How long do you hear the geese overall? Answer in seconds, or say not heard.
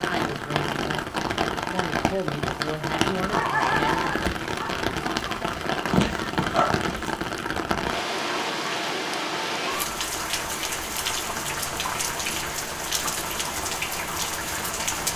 not heard.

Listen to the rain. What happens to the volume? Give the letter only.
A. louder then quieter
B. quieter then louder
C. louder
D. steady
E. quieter
D.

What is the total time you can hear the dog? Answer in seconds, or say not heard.
4 s.